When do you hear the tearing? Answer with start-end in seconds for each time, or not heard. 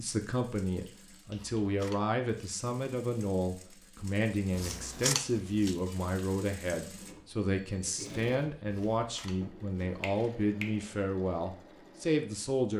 not heard.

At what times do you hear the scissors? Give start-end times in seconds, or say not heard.
1.3-2.0, 4.5-5.8, 8.7-10.3.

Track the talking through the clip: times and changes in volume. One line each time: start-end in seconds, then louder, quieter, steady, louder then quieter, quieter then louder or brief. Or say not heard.
0.0-12.7 steady.